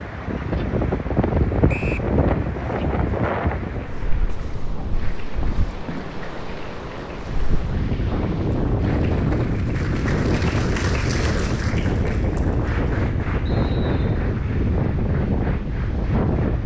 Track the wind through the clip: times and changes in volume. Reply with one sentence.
The wind can be heard from 0.0 to 16.6 s, getting quieter then louder.